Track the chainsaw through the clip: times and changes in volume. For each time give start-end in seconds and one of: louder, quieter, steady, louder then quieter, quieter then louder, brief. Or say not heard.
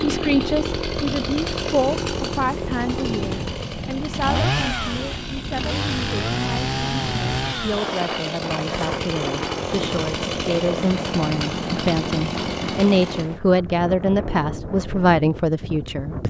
0.0-13.2 steady.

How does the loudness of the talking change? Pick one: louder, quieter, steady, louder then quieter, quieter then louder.
quieter then louder.